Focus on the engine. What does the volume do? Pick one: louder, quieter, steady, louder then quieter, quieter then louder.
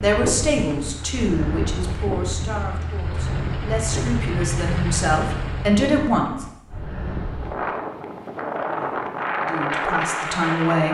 louder.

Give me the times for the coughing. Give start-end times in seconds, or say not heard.
not heard.